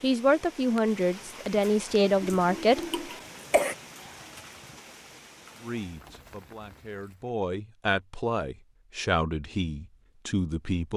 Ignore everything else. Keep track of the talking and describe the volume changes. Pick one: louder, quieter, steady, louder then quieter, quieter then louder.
quieter then louder.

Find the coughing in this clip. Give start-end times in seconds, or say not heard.
2.5-3.8.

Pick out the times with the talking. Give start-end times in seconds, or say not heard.
0.0-3.0, 5.6-10.9.